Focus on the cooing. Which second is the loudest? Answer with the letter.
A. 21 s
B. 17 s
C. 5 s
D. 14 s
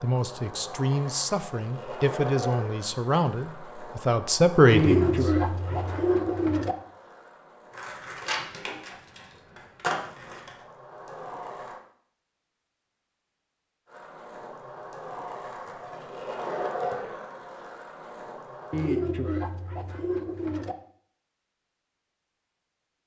C.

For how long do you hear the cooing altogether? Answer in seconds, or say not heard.
4 s.